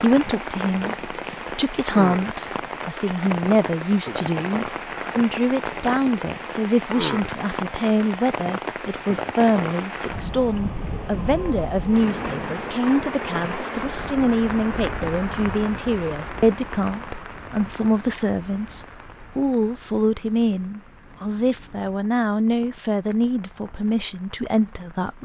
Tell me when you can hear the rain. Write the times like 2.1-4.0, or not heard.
0.0-25.2.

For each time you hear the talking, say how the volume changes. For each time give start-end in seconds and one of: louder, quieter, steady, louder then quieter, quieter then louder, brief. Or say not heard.
0.0-25.2 steady.